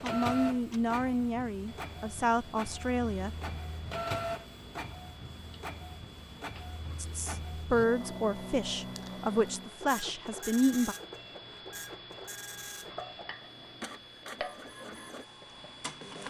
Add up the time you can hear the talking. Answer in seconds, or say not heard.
7 s.